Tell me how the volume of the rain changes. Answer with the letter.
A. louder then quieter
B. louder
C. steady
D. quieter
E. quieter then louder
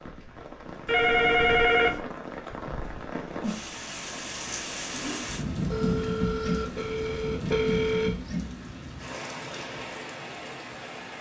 A.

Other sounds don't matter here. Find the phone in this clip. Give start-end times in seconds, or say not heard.
0.8-2.0, 5.7-8.2.